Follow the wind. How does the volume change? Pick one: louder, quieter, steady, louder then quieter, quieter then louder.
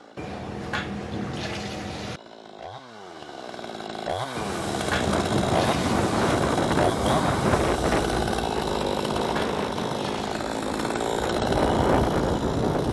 quieter then louder.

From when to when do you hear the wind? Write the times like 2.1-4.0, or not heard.
4.9-12.8.